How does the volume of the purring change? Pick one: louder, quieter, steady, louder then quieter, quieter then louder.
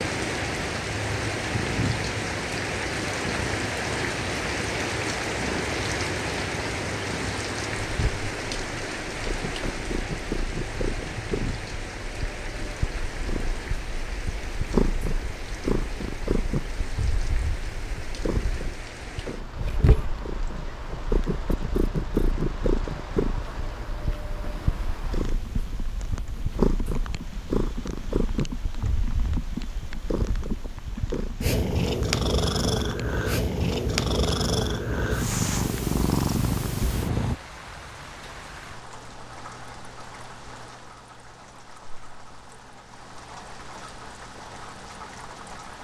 louder.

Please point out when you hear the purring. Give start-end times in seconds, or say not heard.
0.0-37.4.